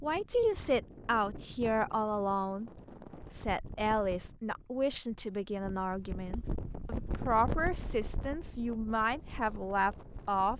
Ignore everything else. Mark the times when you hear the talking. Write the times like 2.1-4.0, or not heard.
0.0-2.7, 3.3-10.5.